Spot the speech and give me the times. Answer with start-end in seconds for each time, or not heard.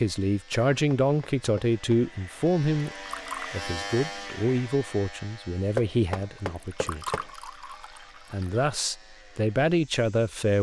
0.0-7.2, 8.3-10.5.